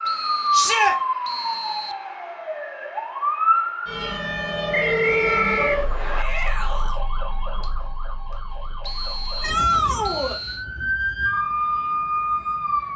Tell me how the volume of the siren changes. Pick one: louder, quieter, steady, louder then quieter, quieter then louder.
quieter then louder.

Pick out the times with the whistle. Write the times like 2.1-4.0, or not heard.
0.1-2.0, 4.7-6.2, 8.8-10.7.